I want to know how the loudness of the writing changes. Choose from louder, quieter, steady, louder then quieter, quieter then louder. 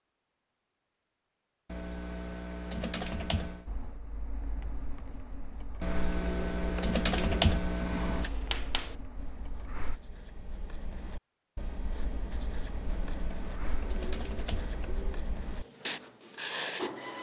louder.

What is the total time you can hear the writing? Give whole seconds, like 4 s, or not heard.
9 s.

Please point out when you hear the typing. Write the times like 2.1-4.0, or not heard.
1.6-3.6, 5.8-8.3, 12.8-14.8.